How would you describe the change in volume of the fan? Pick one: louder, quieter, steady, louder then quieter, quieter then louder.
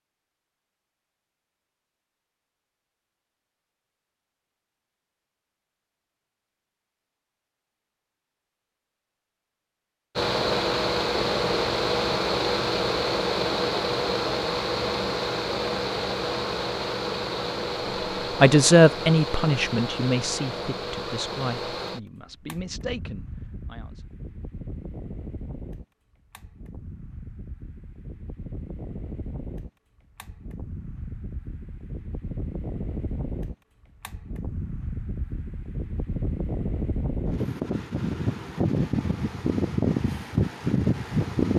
quieter then louder.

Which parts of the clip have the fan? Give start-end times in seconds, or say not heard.
10.2-41.5.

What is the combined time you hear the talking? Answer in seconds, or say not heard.
6 s.